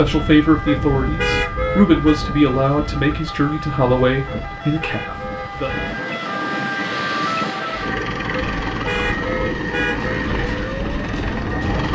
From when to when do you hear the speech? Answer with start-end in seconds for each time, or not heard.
0.0-5.8.